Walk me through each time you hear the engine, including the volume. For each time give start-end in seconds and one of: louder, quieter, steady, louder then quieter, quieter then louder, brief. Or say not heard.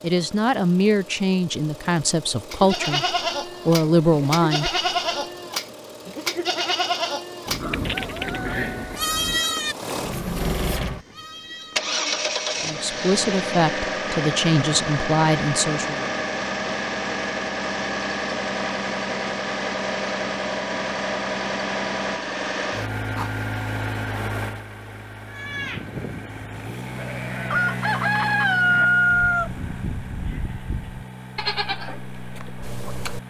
0.0-33.2 louder then quieter.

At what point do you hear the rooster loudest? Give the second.
29 s.